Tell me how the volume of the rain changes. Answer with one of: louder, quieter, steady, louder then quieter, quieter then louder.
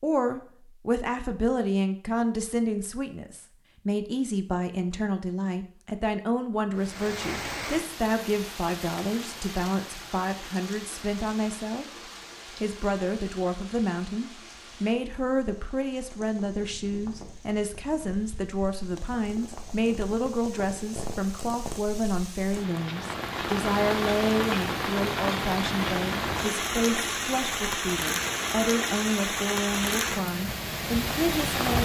quieter then louder.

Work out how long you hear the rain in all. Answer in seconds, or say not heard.
25 s.